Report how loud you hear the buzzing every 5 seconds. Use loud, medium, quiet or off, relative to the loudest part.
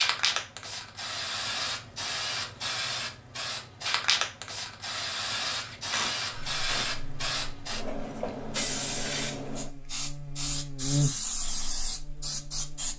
off, quiet, loud.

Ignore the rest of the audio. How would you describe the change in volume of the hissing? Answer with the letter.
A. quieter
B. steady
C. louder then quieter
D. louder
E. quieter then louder
B.